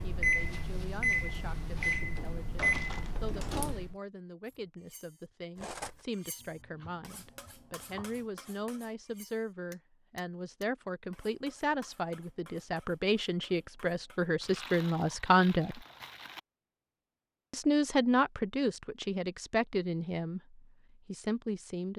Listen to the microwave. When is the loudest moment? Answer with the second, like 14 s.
1 s.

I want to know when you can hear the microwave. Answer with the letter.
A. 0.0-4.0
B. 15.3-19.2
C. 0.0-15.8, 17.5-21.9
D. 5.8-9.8
A.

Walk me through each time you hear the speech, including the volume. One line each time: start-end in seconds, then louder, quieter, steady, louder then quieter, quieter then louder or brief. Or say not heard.
0.0-15.8 louder
17.5-21.9 quieter.